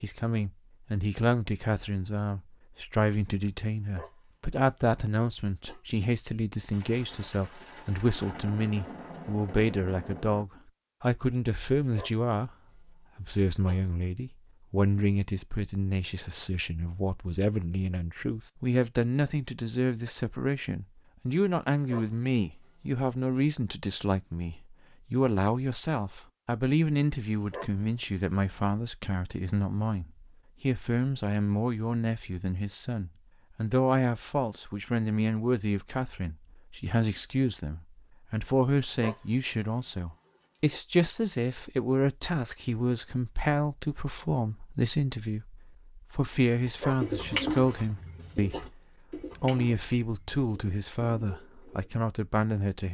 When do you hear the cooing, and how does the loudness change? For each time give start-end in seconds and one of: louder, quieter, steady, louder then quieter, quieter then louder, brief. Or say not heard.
46.6-51.9 quieter then louder.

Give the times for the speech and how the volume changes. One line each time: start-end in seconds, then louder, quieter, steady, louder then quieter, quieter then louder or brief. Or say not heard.
0.0-12.5 steady
13.2-52.8 steady.